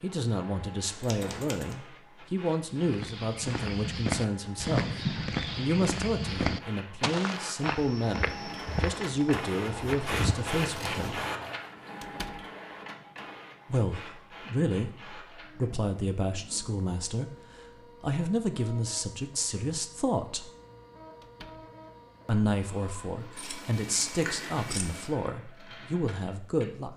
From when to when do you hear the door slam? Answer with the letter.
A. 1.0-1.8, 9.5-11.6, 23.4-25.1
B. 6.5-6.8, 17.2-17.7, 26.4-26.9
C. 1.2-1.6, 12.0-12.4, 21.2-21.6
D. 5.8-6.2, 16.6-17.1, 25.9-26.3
C.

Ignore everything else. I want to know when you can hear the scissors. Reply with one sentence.
You can hear the scissors from 1.0 to 1.8 s, from 9.5 to 11.6 s and from 23.4 to 25.1 s.